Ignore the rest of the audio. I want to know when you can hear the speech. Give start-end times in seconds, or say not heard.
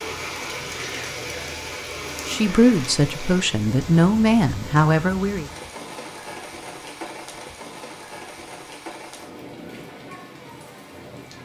2.2-5.5.